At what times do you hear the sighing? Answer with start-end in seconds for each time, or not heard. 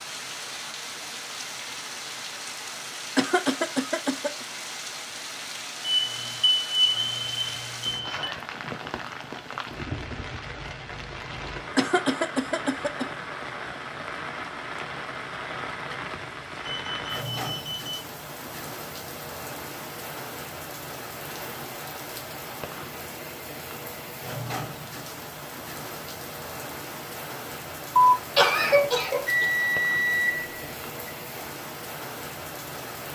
not heard.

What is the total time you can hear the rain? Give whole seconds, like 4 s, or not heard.
33 s.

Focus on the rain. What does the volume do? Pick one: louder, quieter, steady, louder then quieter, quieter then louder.
steady.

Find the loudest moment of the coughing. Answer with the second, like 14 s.
28 s.